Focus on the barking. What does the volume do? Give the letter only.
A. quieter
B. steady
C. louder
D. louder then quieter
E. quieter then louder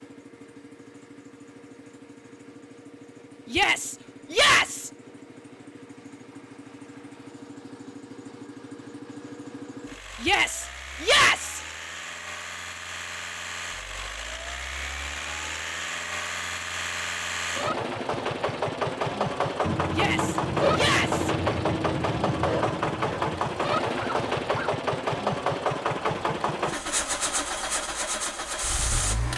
A.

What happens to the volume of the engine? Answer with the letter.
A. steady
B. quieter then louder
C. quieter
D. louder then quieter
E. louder
E.